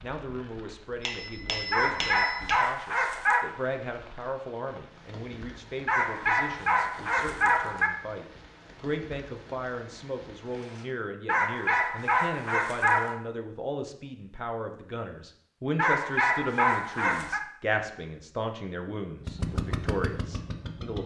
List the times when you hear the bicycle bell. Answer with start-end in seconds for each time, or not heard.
1.0-2.6.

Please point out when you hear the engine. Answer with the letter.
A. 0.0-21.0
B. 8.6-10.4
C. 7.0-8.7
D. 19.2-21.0
D.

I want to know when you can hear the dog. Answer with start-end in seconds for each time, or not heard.
1.7-3.5, 5.8-7.9, 11.2-13.2, 15.8-17.4.